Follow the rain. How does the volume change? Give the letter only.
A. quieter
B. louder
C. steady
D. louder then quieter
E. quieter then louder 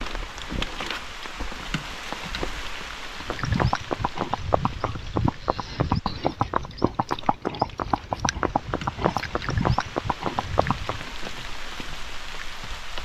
E.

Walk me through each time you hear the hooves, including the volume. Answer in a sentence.
The hooves can be heard from 3.1 to 11.1 s, at a steady volume.